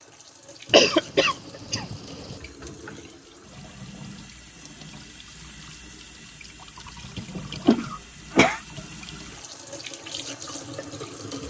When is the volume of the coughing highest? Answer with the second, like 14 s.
1 s.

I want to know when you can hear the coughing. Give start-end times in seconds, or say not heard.
0.7-2.4, 7.7-8.6.